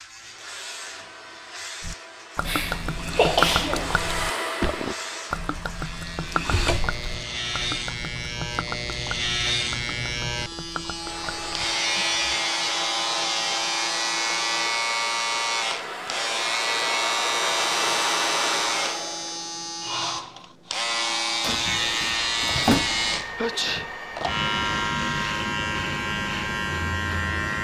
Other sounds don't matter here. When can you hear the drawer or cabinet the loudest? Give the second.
23 s.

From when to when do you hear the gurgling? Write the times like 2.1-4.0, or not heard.
1.8-12.1.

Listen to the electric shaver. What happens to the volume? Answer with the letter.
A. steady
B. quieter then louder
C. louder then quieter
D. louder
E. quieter
D.